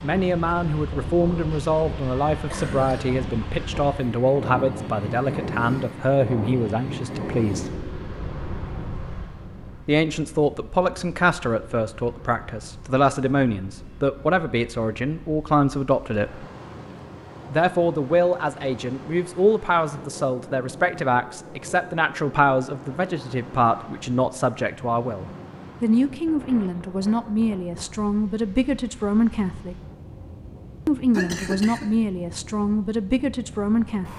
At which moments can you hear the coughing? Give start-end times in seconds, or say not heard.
2.4-3.2, 31.1-31.9.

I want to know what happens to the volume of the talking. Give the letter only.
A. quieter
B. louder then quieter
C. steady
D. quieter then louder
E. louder
C.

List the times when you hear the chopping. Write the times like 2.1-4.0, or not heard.
not heard.